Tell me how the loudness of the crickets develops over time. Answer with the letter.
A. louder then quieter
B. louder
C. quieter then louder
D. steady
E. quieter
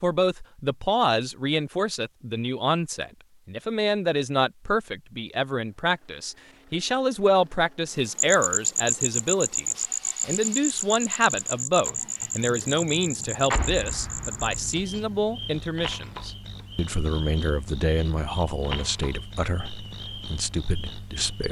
E.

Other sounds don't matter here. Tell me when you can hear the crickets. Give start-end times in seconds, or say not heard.
8.2-21.4.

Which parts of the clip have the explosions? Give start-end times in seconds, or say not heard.
13.5-14.6.